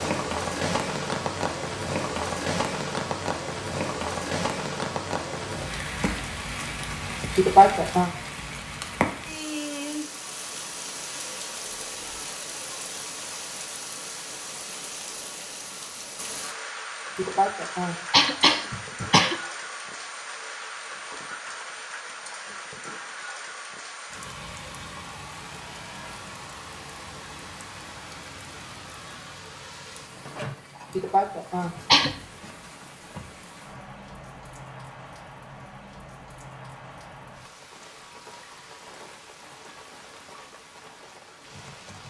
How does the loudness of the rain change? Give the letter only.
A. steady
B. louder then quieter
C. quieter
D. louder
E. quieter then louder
C.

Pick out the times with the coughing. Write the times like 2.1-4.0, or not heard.
7.3-8.1, 17.1-19.4, 30.9-32.1.